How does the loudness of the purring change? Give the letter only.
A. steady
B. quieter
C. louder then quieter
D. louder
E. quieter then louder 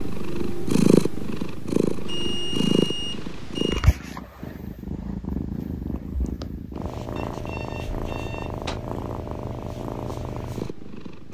B.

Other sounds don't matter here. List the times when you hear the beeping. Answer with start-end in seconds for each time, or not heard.
2.0-3.9, 7.2-8.8.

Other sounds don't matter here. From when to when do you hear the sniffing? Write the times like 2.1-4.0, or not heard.
not heard.